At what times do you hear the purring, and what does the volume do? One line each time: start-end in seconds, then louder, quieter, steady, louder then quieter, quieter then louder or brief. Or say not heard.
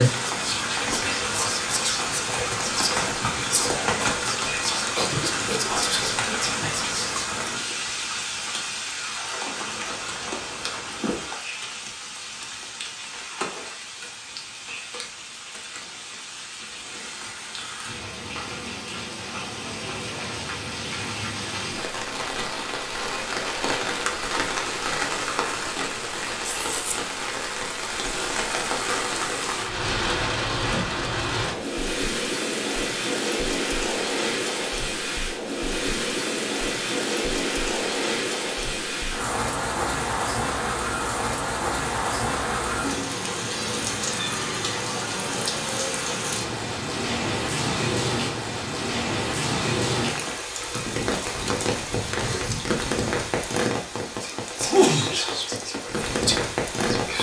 not heard.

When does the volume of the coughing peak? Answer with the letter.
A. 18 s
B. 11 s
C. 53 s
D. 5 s
D.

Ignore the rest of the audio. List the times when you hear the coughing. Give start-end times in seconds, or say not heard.
5.0-6.5.